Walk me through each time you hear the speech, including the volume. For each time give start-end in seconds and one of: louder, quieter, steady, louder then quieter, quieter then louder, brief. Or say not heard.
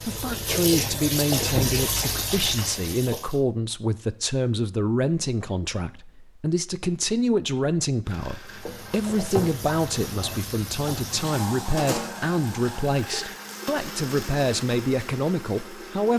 0.0-16.1 steady.